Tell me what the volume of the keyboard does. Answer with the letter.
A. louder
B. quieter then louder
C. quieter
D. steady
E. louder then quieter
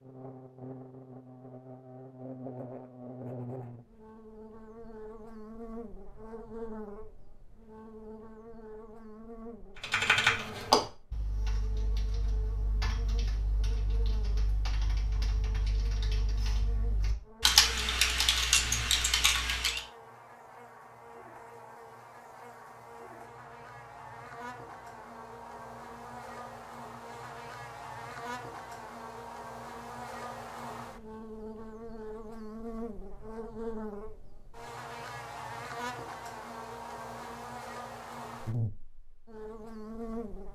B.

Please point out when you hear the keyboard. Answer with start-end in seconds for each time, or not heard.
9.8-19.8.